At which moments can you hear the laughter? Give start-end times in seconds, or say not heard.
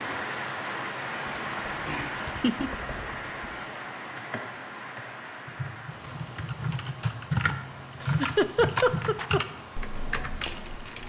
2.1-2.7, 8.0-9.4.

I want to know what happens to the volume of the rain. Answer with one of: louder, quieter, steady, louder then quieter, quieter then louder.
quieter.